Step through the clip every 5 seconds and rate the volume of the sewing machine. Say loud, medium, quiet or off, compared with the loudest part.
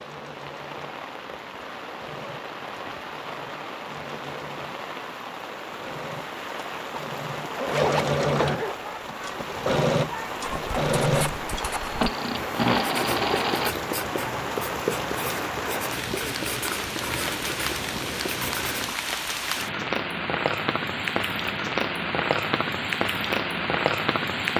quiet, loud, loud, off, off.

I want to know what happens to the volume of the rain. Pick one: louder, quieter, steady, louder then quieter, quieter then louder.
louder.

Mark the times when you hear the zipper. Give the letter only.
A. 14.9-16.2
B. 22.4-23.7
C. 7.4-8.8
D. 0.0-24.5
C.